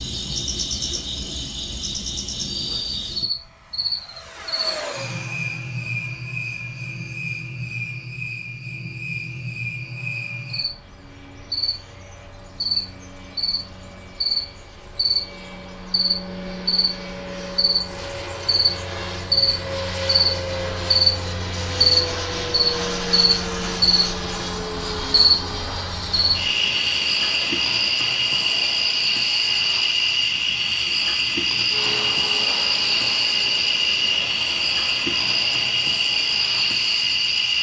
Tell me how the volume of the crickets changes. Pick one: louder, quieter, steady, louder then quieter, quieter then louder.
louder.